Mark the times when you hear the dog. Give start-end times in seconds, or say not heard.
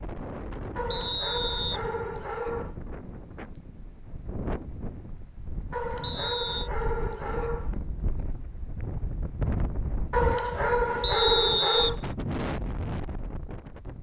0.8-2.8, 5.7-7.8, 10.1-12.0.